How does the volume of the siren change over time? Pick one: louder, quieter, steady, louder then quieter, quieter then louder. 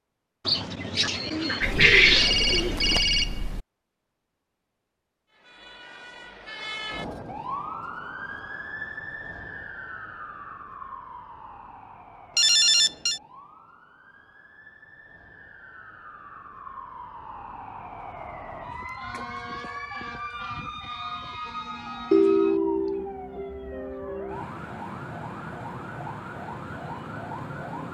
quieter then louder.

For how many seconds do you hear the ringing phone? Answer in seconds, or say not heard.
4 s.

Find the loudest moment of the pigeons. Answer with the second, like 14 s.
2 s.